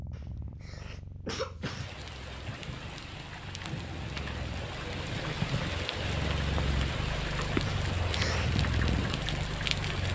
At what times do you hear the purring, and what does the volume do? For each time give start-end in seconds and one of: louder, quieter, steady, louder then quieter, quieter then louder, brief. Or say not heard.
0.0-10.1 louder.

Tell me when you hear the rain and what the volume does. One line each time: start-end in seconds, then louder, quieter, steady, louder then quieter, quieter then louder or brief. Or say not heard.
1.6-10.1 louder.